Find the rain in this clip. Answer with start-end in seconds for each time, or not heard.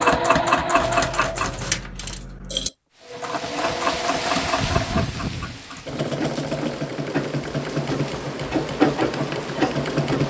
3.0-10.2.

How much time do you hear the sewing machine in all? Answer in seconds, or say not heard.
10 s.